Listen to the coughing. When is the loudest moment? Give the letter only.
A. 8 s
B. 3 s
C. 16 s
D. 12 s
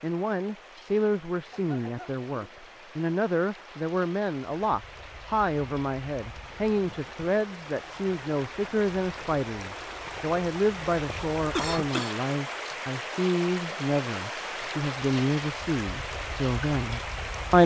D.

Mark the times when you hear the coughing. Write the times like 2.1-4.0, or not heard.
1.5-2.7, 11.1-12.2.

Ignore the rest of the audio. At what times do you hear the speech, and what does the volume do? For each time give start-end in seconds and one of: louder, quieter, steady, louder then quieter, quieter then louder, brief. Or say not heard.
0.0-17.6 steady.